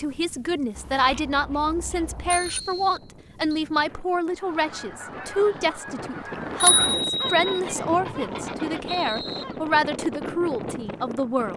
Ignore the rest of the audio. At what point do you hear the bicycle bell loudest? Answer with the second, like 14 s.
7 s.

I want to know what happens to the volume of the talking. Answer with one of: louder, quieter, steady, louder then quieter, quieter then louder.
steady.